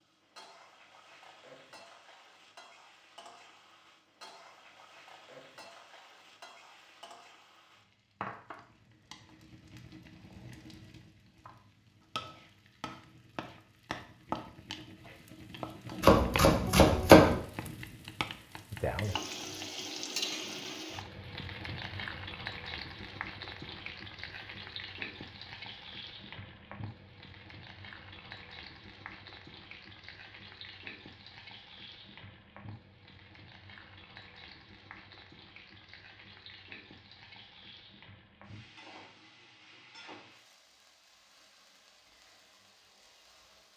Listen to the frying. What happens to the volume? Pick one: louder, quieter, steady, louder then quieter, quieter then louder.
louder then quieter.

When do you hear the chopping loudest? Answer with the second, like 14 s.
17 s.